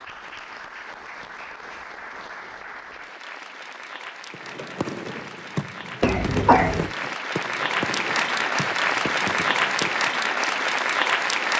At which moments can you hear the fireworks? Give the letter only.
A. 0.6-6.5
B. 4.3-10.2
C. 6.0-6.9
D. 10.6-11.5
B.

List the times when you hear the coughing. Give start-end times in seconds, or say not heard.
6.0-6.9.